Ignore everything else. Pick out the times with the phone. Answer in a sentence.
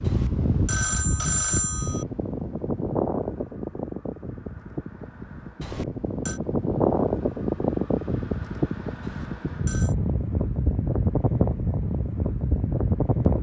You can hear the phone from 0.1 to 2.0 s, from 5.6 to 6.4 s and from 9.0 to 9.9 s.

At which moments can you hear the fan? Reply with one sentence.
You can hear the fan from 0.0 to 13.3 s.